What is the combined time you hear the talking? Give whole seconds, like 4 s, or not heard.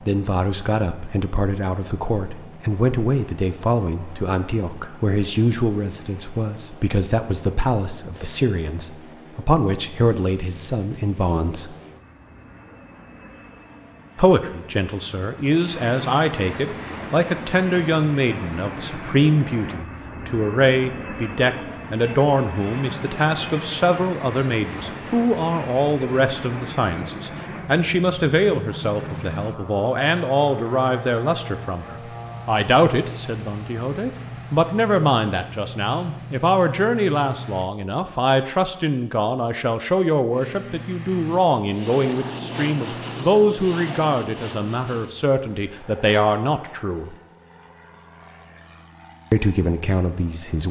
46 s.